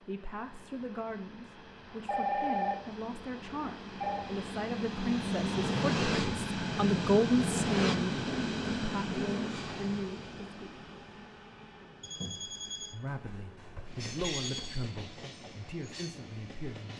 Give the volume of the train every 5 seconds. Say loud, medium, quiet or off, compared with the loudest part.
quiet, loud, quiet, quiet.